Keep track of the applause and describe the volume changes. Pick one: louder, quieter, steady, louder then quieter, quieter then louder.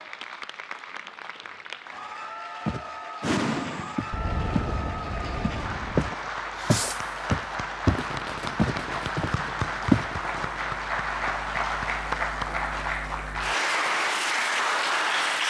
louder.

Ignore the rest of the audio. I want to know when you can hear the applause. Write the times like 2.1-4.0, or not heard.
0.0-15.4.